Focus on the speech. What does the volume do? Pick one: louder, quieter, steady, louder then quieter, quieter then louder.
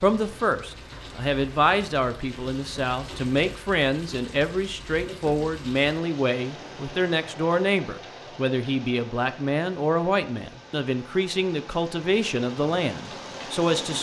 steady.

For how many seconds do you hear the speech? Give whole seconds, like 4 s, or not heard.
14 s.